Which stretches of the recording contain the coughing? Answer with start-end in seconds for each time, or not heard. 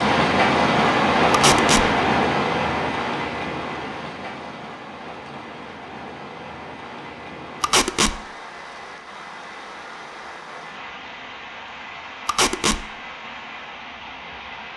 not heard.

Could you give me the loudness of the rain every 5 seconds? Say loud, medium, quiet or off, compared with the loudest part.
loud, quiet, quiet.